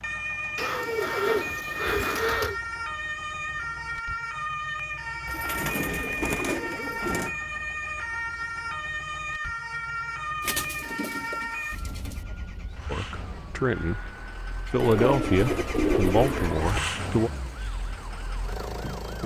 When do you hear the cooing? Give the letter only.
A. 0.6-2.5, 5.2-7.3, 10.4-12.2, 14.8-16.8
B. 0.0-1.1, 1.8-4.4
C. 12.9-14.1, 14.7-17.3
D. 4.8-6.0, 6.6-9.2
A.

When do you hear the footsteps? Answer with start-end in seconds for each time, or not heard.
not heard.